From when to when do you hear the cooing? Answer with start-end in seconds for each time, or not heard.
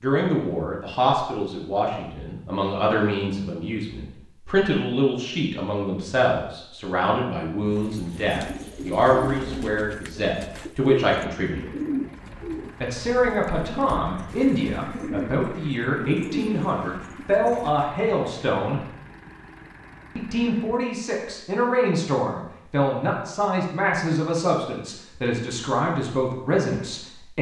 7.7-17.9.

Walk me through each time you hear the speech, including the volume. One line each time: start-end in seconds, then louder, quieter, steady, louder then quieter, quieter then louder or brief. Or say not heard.
0.0-11.7 steady
12.8-18.8 steady
20.1-27.3 steady.